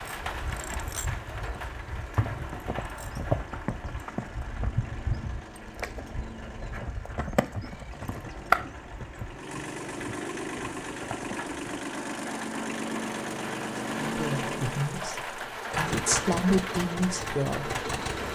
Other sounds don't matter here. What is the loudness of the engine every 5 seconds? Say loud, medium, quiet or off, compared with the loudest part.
quiet, medium, loud, loud.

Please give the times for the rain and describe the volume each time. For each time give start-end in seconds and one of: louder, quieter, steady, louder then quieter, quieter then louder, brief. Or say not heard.
0.0-18.3 quieter then louder.